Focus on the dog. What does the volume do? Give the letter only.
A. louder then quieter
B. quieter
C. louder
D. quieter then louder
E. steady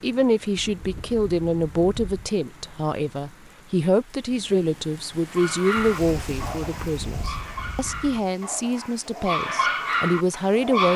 D.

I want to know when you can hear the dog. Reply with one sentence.
The dog can be heard from 5.3 to 10.9 s.